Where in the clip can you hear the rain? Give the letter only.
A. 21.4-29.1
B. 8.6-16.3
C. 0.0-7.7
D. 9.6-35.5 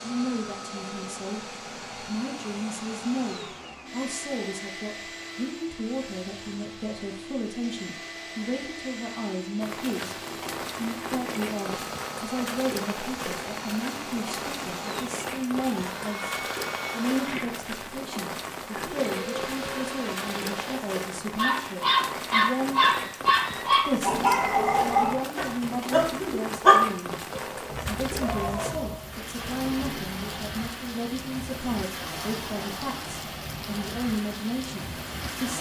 D.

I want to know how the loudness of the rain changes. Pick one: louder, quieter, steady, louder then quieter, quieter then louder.
steady.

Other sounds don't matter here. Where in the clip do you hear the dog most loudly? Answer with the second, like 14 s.
27 s.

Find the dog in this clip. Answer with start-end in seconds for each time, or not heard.
21.4-29.1.